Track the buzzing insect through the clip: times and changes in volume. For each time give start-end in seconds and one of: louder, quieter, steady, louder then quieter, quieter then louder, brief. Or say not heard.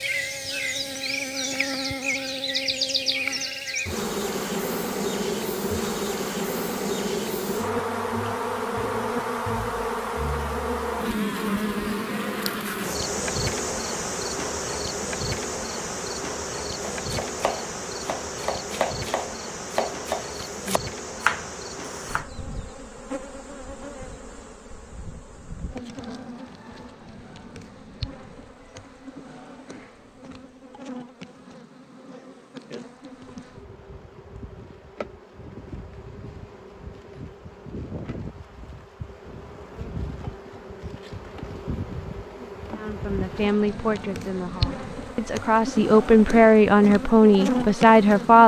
0.0-48.4 quieter then louder.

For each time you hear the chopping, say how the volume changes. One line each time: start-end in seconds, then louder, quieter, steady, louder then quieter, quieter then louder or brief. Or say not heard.
16.9-22.2 louder.